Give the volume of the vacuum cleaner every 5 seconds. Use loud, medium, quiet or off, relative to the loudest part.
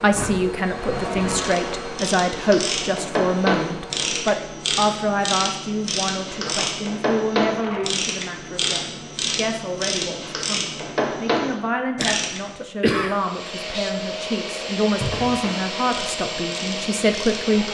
loud, off, loud, loud.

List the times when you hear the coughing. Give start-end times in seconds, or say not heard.
11.9-13.2.